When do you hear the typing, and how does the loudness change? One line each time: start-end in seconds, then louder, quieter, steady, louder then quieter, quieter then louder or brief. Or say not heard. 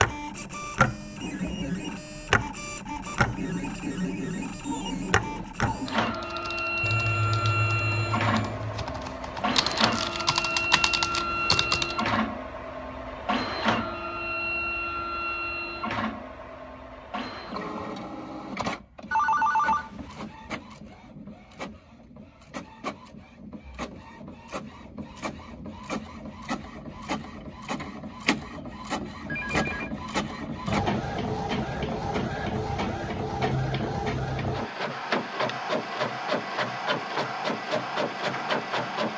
5.0-12.2 louder.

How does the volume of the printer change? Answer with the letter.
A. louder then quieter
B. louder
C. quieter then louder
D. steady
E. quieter
C.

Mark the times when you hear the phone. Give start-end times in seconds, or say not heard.
6.8-8.8, 19.1-19.9, 29.2-29.9.